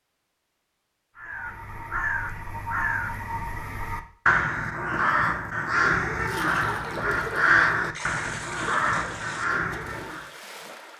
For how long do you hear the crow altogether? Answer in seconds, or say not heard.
9 s.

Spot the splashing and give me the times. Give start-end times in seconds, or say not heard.
6.2-10.9.